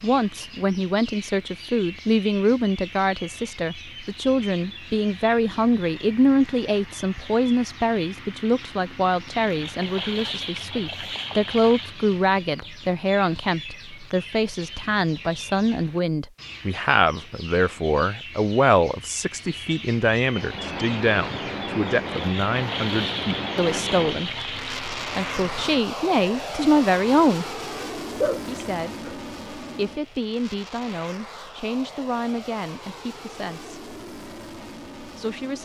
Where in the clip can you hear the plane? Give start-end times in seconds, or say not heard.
20.3-35.6.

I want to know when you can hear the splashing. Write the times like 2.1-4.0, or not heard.
9.3-11.9, 22.1-24.8.